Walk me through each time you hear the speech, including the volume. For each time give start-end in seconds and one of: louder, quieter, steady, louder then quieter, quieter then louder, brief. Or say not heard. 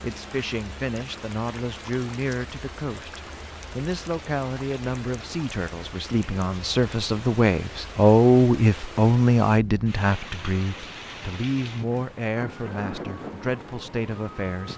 0.0-14.7 louder then quieter.